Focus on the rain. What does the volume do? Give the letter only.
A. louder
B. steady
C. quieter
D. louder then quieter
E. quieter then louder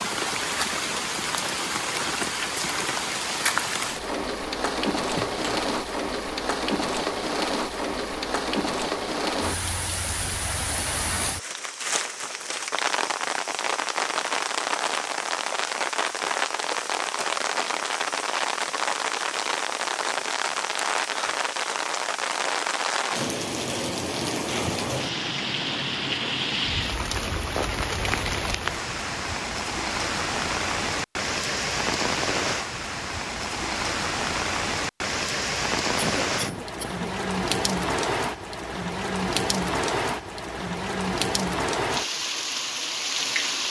B.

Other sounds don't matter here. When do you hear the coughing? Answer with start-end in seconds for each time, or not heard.
5.2-5.8, 36.0-37.0.